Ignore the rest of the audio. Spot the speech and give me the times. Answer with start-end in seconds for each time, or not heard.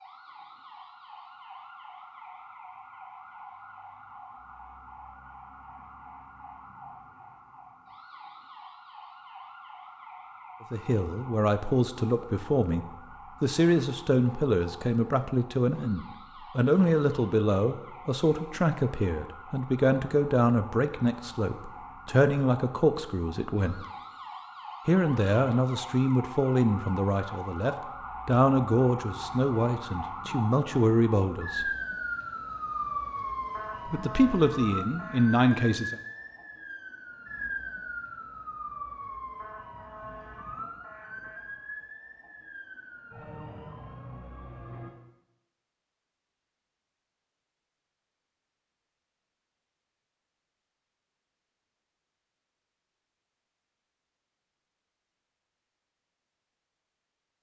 10.7-23.9, 24.9-31.7, 33.9-36.0.